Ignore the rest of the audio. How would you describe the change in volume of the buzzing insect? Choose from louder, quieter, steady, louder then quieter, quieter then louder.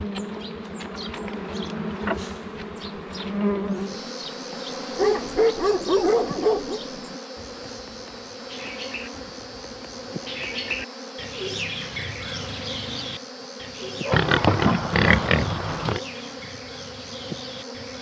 quieter.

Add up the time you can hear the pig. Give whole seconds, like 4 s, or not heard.
2 s.